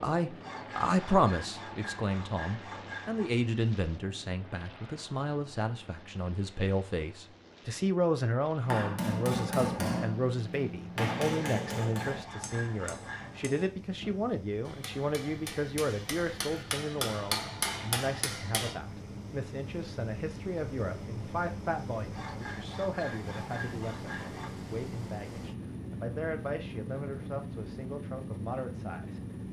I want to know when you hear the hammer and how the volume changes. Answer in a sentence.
The hammer can be heard from 8.6 to 18.8 s, getting quieter then louder.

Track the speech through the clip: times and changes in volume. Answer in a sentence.
The speech can be heard from 0.0 to 29.2 s, getting quieter.